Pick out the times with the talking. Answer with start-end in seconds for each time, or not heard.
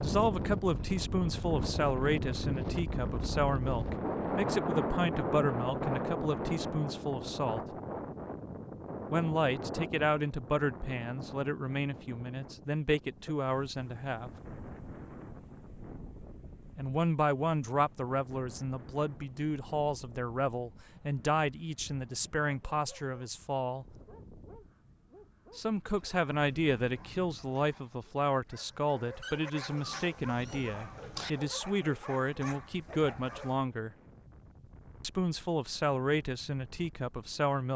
0.0-7.6, 9.1-14.3, 16.8-23.9, 25.6-33.9, 35.0-37.7.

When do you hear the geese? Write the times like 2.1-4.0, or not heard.
not heard.